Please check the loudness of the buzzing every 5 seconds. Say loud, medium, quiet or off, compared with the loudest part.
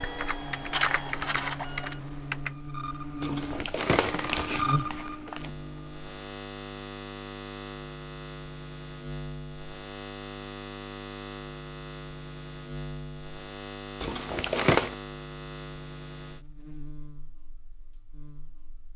loud, loud, loud, medium.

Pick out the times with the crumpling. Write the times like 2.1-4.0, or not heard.
3.2-5.5, 14.0-14.9.